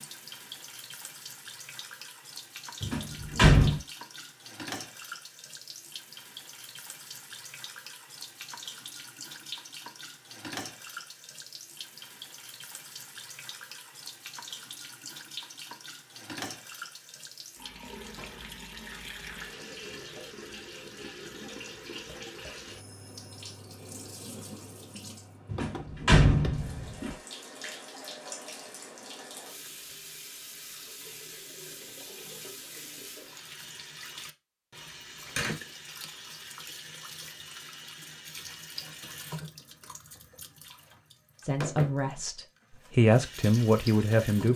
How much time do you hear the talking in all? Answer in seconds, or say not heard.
3 s.